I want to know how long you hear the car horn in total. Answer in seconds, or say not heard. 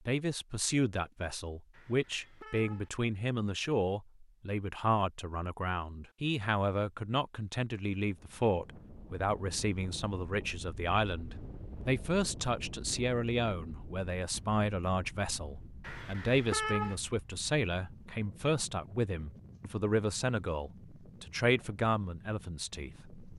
2 s.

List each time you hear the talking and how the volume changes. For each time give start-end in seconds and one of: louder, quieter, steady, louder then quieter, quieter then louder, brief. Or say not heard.
0.1-23.1 steady.